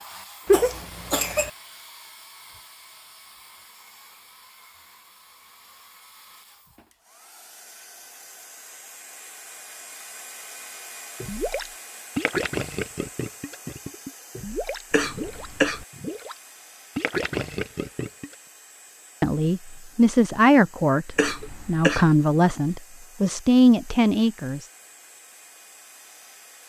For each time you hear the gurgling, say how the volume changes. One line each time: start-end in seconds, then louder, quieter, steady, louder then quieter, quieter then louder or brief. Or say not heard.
11.2-18.4 quieter then louder.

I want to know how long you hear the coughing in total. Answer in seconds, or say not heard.
3 s.